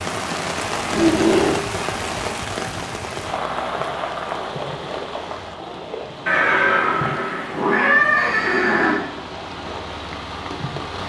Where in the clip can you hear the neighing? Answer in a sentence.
You can hear the neighing from 0.9 to 1.6 s and from 6.2 to 9.0 s.